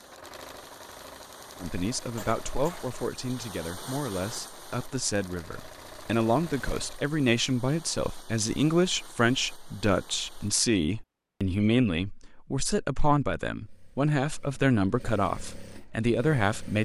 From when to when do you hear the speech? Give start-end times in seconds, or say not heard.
1.6-16.7.